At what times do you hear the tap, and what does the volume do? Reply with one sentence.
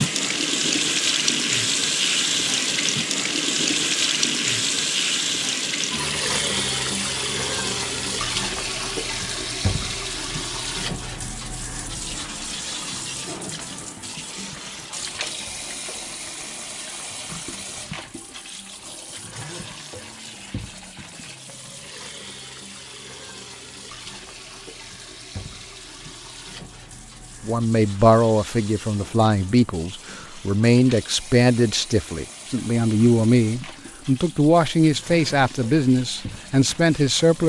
You can hear the tap from 0.0 to 37.4 s, getting quieter.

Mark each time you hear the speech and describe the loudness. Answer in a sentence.
The speech can be heard from 27.4 to 37.4 s, at a steady volume.